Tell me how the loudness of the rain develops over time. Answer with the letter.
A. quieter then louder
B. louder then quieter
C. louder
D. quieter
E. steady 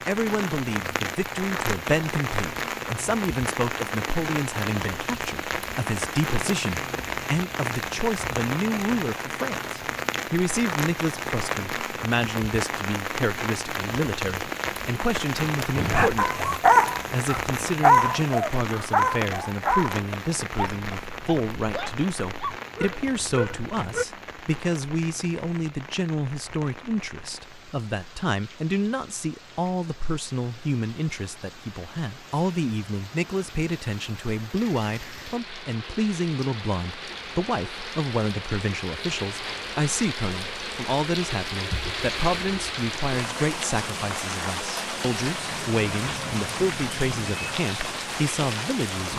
A.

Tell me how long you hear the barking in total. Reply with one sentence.
You can hear the barking for 8 seconds altogether.